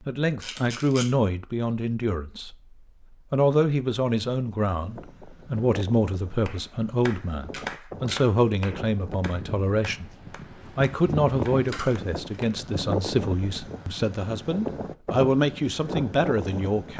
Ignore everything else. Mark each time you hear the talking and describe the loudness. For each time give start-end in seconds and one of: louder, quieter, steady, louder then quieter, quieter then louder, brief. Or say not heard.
0.1-16.9 steady.